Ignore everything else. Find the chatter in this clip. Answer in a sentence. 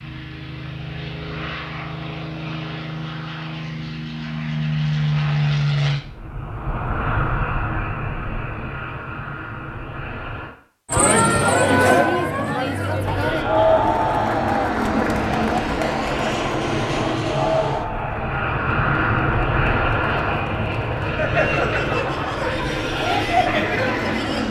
You can hear the chatter from 10.9 to 24.4 s.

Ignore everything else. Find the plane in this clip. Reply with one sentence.
The plane can be heard from 0.0 to 10.6 s and from 12.9 to 24.4 s.